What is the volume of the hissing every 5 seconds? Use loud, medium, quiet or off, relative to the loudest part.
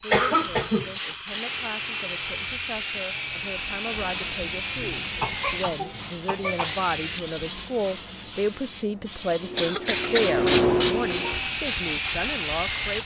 medium, medium, loud.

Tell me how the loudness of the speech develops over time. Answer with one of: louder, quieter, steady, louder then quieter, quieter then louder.
louder.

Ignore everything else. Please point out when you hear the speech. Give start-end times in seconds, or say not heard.
0.0-13.0.